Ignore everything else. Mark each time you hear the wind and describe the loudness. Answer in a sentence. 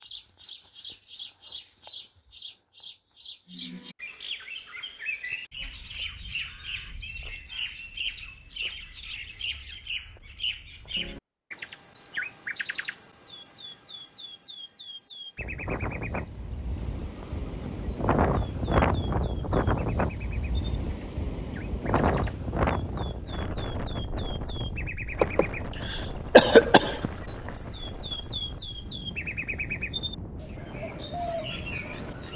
The wind can be heard from 15.3 to 32.3 s, getting quieter.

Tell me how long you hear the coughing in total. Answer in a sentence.
The coughing can be heard for 2 seconds in total.